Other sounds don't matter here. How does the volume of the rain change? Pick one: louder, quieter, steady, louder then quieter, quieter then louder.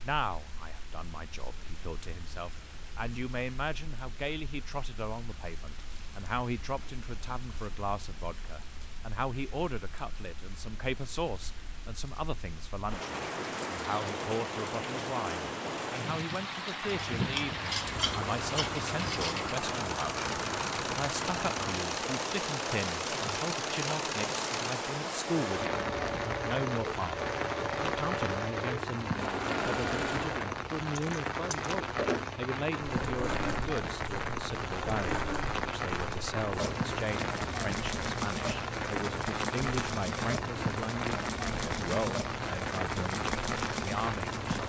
louder.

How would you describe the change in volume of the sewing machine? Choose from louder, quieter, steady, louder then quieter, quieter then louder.
steady.